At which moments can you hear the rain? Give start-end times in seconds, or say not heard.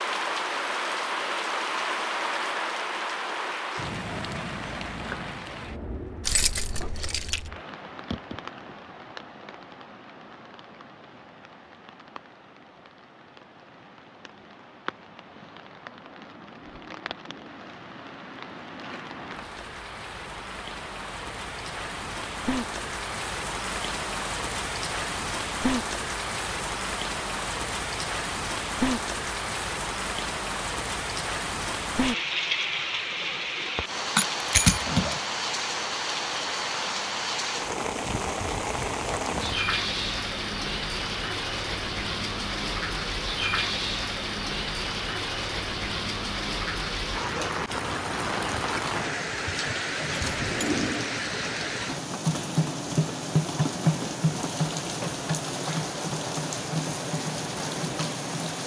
0.0-58.6.